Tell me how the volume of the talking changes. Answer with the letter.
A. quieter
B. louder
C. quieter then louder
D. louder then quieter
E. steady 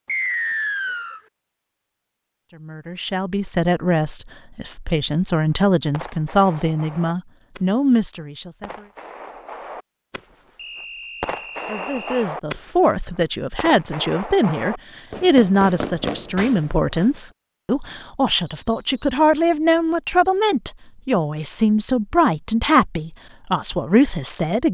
E.